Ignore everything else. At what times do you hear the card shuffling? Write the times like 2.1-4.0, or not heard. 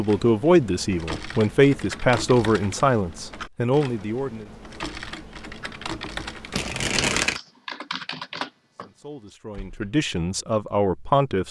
6.5-7.4.